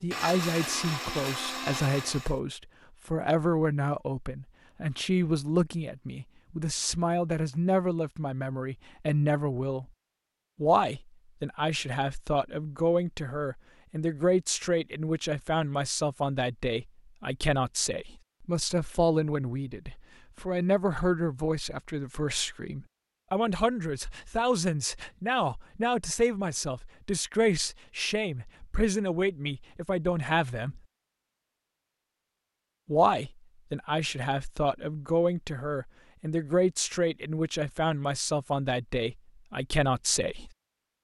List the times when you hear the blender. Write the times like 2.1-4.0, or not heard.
0.0-2.4.